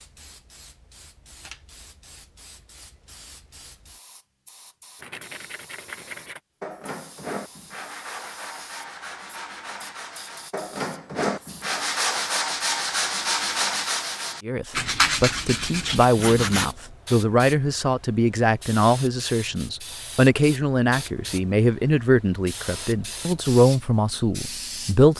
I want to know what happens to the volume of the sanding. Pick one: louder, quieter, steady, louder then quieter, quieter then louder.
louder.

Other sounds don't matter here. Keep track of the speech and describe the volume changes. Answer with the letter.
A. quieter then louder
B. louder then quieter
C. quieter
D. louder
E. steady
E.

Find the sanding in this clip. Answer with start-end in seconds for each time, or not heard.
5.0-16.7.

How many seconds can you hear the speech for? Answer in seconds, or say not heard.
11 s.